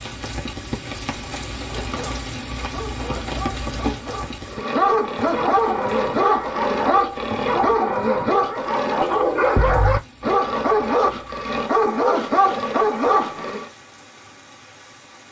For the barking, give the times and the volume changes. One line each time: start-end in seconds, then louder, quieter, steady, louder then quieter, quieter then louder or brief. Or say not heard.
1.7-13.7 louder.